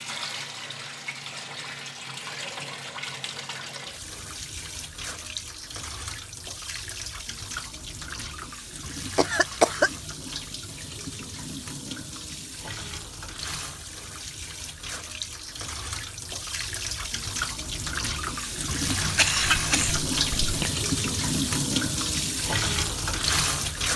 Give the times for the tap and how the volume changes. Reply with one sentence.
The tap can be heard from 0.0 to 23.9 s, getting louder.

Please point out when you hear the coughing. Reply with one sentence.
The coughing can be heard from 9.2 to 9.9 s and from 19.0 to 20.7 s.